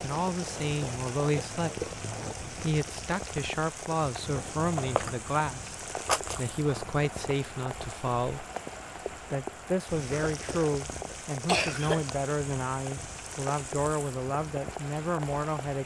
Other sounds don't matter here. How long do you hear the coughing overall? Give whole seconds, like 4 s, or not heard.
2 s.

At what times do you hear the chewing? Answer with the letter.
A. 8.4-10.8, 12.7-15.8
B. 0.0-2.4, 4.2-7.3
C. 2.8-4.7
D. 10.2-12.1
B.